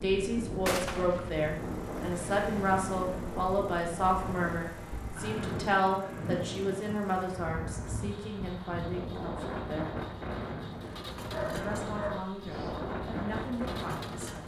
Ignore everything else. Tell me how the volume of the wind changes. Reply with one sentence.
The loudness of the wind stays about the same.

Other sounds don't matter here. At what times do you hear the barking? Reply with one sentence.
The barking can be heard from 11.2 to 12.8 s.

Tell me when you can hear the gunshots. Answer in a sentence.
You can hear the gunshots from 0.7 to 1.3 s.